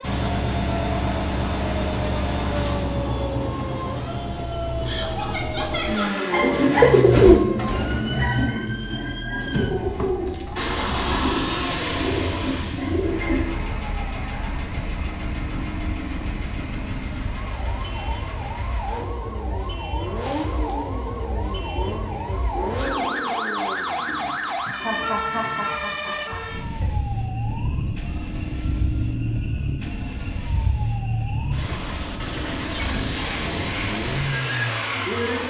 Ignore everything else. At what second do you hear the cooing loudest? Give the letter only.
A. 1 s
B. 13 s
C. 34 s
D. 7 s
D.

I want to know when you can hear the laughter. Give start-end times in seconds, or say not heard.
4.8-6.2, 24.8-26.9.